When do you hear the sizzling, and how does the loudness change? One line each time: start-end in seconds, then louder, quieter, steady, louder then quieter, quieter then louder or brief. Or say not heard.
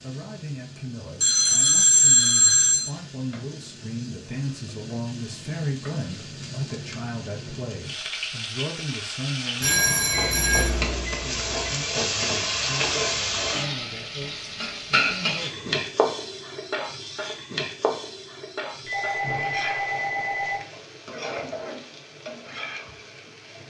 0.0-23.6 louder then quieter.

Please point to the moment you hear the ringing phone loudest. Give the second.
2 s.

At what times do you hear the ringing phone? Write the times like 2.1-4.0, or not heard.
1.2-2.9, 9.6-10.7, 18.9-20.6.